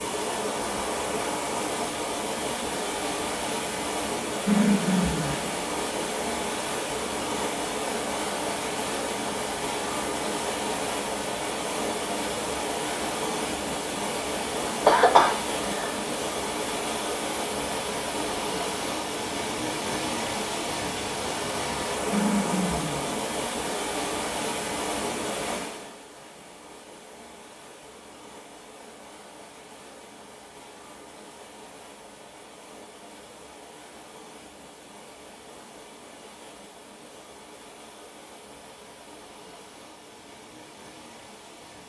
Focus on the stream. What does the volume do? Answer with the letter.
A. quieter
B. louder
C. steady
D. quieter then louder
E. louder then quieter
A.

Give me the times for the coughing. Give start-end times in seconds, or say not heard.
14.8-15.9.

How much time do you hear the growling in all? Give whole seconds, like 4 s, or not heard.
2 s.